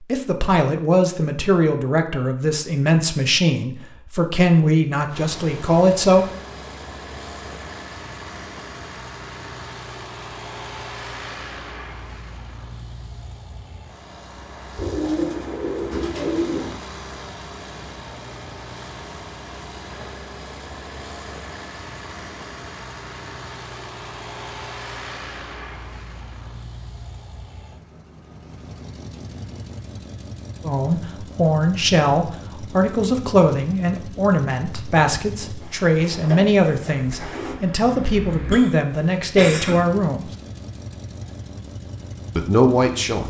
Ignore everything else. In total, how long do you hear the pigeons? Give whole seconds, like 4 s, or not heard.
4 s.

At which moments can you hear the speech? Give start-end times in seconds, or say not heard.
0.1-6.2, 30.6-40.3, 42.4-43.2.